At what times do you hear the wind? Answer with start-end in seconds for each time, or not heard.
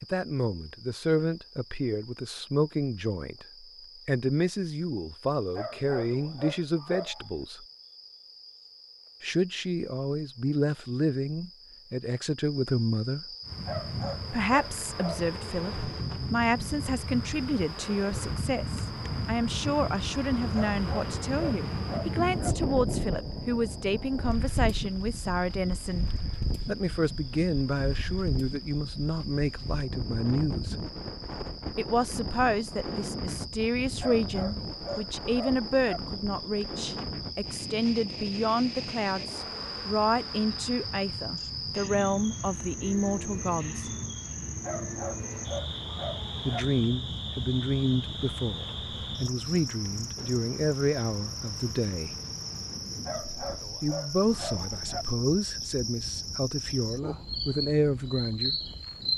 13.4-59.1.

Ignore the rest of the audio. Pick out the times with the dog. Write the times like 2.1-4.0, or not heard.
5.5-7.3, 13.7-15.3, 20.5-22.6, 34.0-36.0, 44.6-46.6, 53.0-55.0.